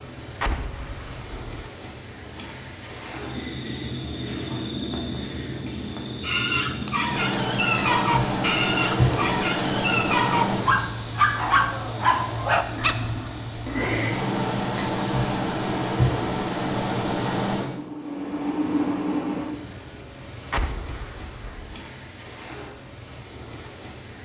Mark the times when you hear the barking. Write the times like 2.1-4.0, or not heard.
6.2-13.2.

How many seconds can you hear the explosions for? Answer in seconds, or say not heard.
2 s.